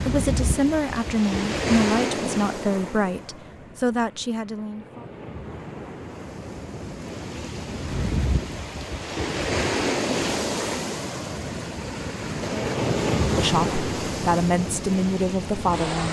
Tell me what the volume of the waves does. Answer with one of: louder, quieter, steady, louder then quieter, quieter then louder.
quieter then louder.